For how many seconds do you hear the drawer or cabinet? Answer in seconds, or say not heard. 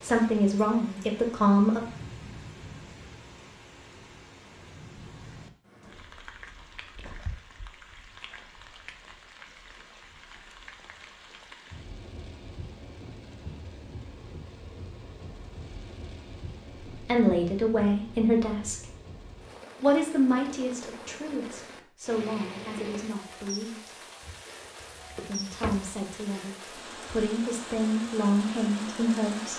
2 s.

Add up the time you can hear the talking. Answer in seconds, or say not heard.
12 s.